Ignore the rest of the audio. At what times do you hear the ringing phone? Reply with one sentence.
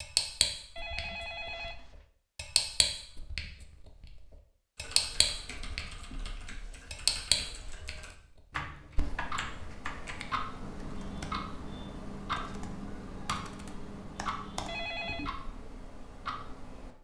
The ringing phone can be heard from 0.8 to 2.0 s and from 14.7 to 15.3 s.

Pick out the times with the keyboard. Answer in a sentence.
The keyboard can be heard from 4.8 to 14.8 s.